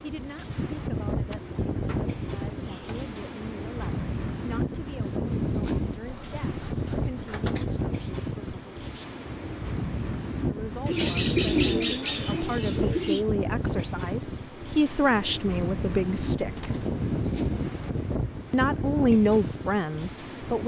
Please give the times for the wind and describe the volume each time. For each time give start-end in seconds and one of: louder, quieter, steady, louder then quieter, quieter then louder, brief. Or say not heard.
0.0-20.6 steady.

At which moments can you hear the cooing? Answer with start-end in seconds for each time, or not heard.
1.2-3.4, 6.0-7.8, 10.8-13.2, 16.3-18.1.